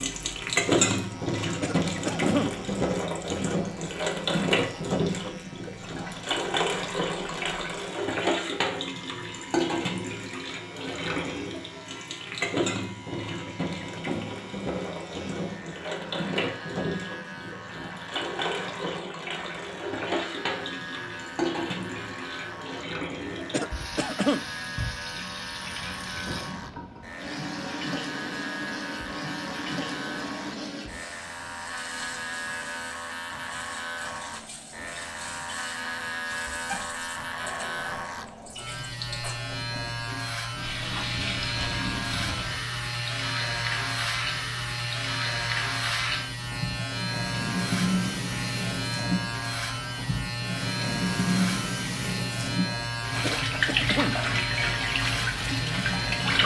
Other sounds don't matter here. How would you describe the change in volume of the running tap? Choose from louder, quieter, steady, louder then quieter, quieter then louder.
quieter then louder.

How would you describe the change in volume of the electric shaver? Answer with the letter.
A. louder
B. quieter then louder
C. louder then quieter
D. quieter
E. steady
A.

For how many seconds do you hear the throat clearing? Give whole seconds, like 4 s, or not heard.
3 s.